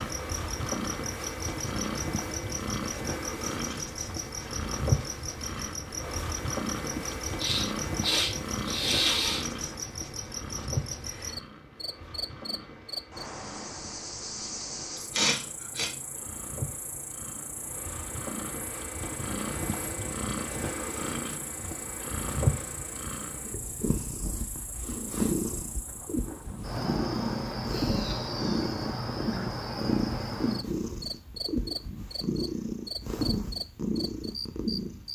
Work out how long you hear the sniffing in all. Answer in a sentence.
The sniffing can be heard for 5 seconds in total.